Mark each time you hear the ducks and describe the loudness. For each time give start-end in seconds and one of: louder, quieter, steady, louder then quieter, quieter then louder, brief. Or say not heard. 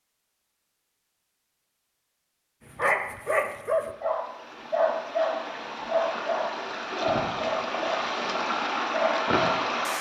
not heard.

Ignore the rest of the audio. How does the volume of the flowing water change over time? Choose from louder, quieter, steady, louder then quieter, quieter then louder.
louder.